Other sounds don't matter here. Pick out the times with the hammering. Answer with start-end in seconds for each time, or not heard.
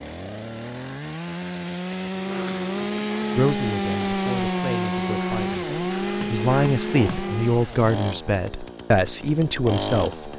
2.1-7.5.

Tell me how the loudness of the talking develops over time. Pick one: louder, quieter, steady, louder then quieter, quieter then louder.
louder.